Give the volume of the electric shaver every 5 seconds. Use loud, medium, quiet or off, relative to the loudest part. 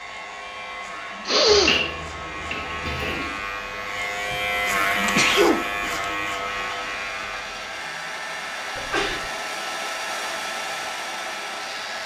loud, loud, medium.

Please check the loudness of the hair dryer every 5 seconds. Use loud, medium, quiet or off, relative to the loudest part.
medium, loud, loud.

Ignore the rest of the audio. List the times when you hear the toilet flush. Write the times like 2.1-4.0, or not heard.
1.4-3.4.